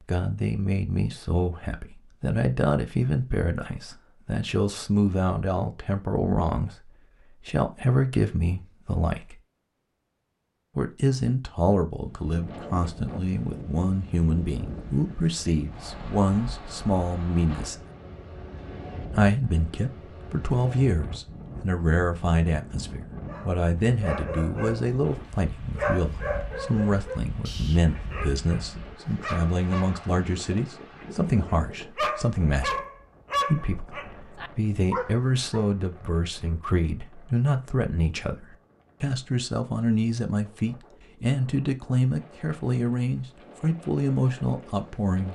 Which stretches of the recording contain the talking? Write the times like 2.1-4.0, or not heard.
0.1-9.4, 10.8-17.9, 19.1-32.9, 33.5-45.2.